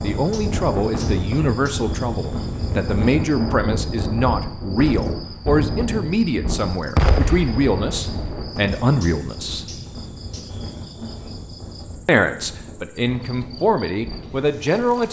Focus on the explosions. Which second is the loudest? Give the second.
7 s.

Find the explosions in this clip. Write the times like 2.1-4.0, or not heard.
7.0-8.4.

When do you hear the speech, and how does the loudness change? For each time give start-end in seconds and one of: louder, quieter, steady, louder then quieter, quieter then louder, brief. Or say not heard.
0.0-9.7 steady
12.1-15.0 brief.